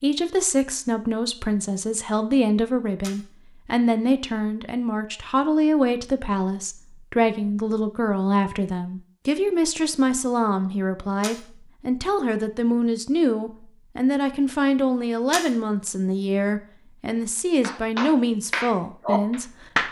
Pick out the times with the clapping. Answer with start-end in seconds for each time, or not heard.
17.6-19.8.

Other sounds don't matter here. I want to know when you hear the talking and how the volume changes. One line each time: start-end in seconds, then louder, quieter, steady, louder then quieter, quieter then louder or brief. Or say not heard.
0.0-19.8 steady.